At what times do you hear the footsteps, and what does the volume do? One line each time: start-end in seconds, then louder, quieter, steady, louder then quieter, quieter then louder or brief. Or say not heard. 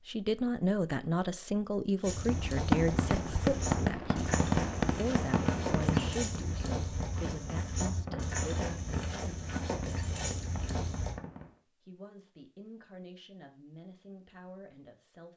2.0-11.2 steady.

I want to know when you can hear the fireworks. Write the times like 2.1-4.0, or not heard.
2.2-11.6.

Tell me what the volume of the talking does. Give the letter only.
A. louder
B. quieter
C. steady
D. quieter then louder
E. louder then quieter
B.